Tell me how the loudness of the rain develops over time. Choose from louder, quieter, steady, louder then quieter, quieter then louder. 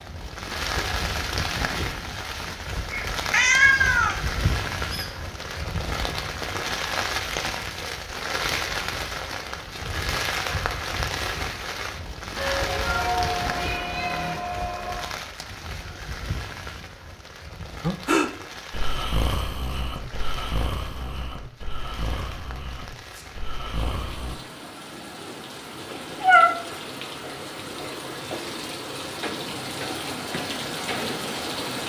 quieter then louder.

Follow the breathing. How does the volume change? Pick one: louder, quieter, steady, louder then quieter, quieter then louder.
quieter.